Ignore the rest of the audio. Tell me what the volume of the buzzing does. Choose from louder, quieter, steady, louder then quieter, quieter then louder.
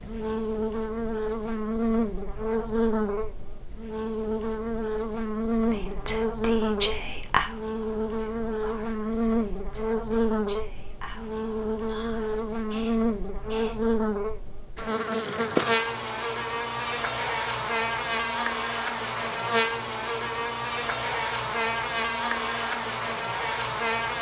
steady.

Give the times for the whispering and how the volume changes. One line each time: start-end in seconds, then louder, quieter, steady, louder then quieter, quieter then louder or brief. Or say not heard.
5.7-13.8 quieter then louder.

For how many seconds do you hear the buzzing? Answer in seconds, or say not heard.
24 s.